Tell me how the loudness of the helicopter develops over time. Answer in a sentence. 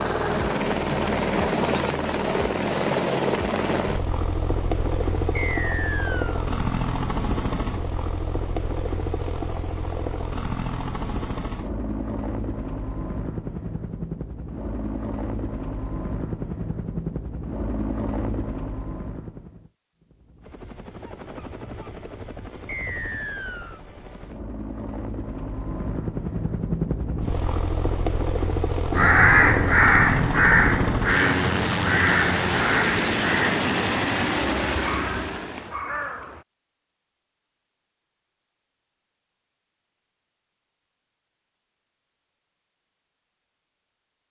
The volume of the helicopter goes down, then up.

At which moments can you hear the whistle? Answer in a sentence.
You can hear the whistle from 5.3 to 6.5 s and from 22.6 to 23.8 s.